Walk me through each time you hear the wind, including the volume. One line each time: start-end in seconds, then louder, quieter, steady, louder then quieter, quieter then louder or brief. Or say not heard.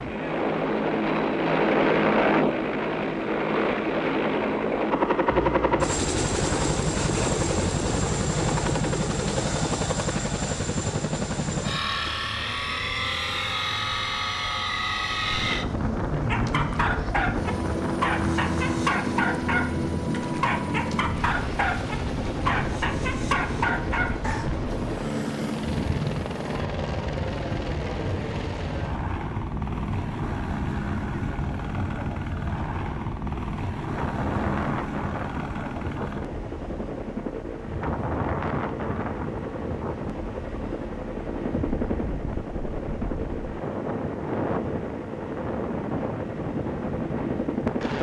15.1-47.9 steady.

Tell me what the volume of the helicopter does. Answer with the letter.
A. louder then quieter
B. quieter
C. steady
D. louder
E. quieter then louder
B.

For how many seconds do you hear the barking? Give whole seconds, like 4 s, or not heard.
8 s.